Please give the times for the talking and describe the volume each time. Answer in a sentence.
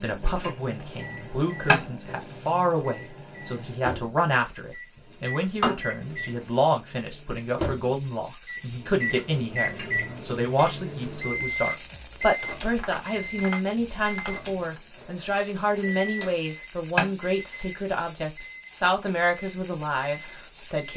You can hear the talking from 0.0 to 20.9 s, at a steady volume.